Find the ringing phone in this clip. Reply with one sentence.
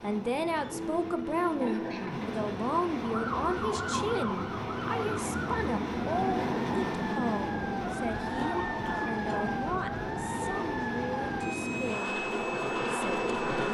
You can hear the ringing phone from 0.7 to 2.0 s.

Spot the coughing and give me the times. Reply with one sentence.
You can hear the coughing from 1.6 to 2.4 s and from 8.3 to 9.6 s.